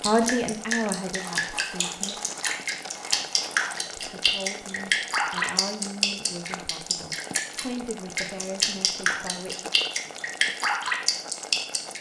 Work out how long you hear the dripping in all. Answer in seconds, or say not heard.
12 s.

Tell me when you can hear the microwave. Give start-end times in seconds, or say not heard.
not heard.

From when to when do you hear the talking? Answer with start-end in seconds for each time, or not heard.
0.1-2.3, 3.8-9.7.